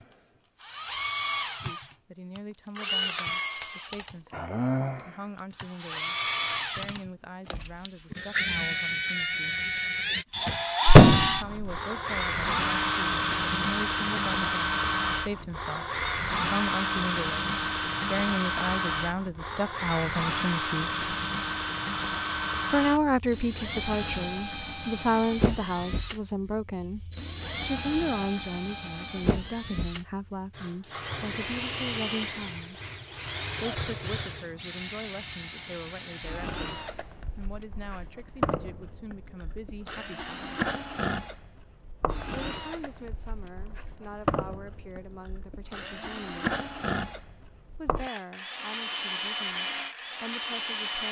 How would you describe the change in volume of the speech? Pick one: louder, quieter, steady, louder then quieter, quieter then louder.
louder then quieter.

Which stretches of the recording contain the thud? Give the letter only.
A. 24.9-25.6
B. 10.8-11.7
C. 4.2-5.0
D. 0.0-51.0
B.